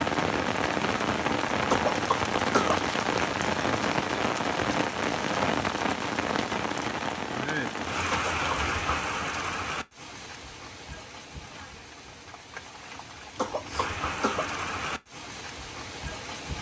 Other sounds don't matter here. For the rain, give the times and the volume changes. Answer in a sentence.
The rain can be heard from 0.0 to 16.5 s, getting quieter then louder.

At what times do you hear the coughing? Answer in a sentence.
You can hear the coughing from 1.6 to 2.9 s, from 8.1 to 8.7 s and from 13.3 to 14.6 s.